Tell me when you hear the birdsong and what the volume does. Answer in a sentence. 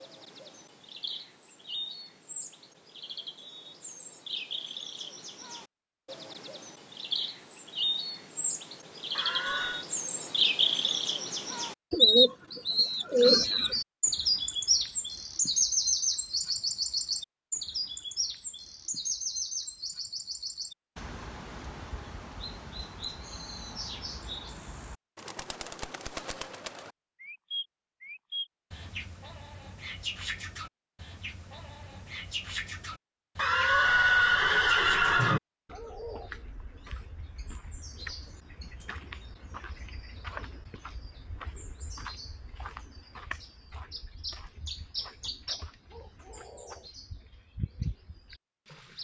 The birdsong can be heard from 0.0 to 48.9 s, getting louder then quieter.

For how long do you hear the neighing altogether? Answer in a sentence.
You can hear the neighing for 3 seconds altogether.